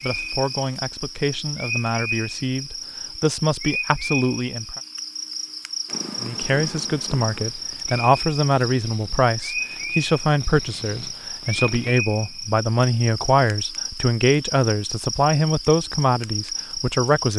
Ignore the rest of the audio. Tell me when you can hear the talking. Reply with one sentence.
You can hear the talking from 0.0 to 4.8 s and from 6.2 to 17.3 s.